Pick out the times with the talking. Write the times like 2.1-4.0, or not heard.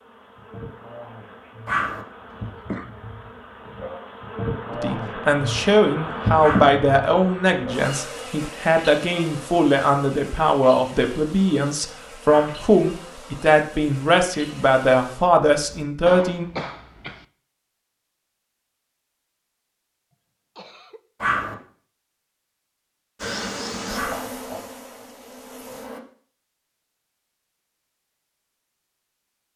4.7-16.4.